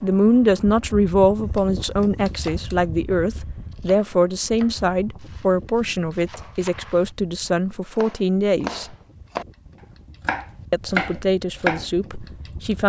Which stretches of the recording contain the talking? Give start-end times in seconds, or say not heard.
0.0-8.9, 10.7-12.8.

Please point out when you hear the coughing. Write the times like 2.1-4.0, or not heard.
not heard.